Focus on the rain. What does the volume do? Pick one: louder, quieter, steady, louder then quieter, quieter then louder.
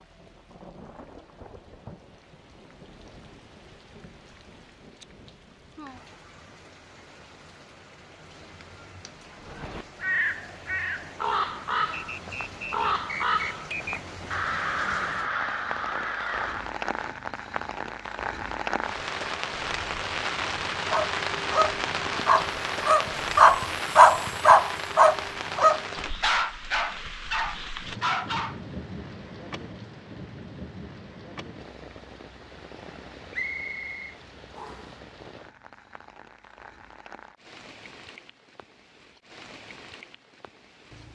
louder then quieter.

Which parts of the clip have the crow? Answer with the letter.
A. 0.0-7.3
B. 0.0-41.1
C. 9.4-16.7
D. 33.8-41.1
C.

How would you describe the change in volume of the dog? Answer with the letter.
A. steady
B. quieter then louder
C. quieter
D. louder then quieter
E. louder
D.